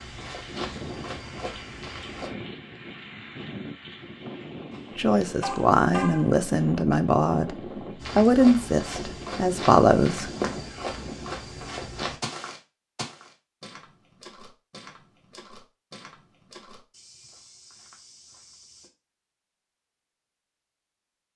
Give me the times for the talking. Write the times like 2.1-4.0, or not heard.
5.0-7.5, 8.2-10.3.